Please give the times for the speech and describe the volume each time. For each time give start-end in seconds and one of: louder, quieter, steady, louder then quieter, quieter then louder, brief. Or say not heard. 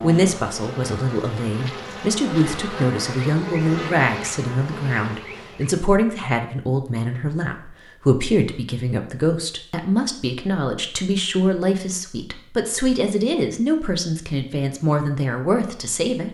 0.0-16.2 steady.